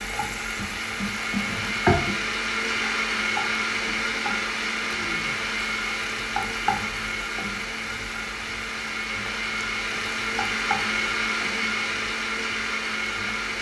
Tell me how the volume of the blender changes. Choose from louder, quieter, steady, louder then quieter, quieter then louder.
steady.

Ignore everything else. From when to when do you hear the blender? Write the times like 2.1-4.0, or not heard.
0.0-13.5.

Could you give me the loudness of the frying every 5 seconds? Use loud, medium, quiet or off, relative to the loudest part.
loud, medium, medium.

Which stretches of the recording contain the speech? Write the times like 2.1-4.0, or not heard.
not heard.